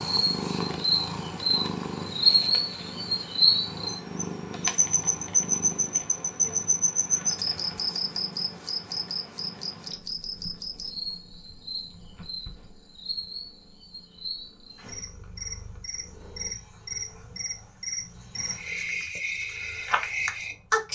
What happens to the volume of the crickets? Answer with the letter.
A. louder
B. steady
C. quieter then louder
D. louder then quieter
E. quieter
C.